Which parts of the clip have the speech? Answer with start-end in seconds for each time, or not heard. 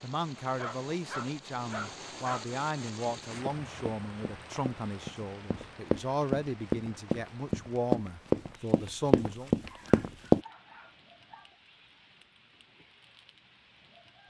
0.0-9.5.